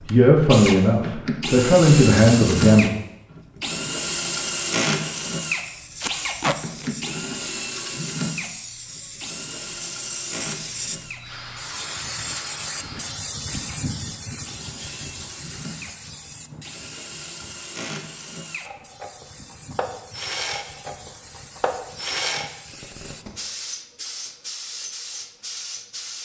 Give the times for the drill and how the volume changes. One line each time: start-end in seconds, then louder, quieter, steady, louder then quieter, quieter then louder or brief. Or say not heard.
0.0-22.5 quieter then louder.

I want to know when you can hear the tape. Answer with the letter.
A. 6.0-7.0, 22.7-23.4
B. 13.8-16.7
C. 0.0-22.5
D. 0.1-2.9
A.